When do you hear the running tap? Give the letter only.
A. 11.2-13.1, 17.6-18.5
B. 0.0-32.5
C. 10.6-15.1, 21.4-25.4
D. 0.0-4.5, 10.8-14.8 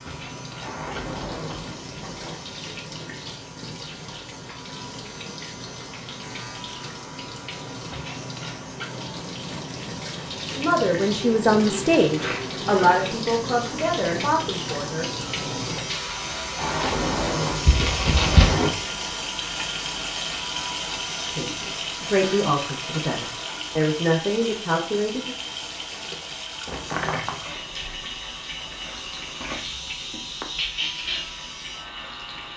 B.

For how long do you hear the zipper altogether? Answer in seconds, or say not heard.
3 s.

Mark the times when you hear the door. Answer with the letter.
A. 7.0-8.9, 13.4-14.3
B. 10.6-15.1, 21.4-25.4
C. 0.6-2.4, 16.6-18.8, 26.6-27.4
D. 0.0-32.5
C.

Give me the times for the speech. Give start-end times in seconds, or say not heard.
10.6-15.1, 21.4-25.4.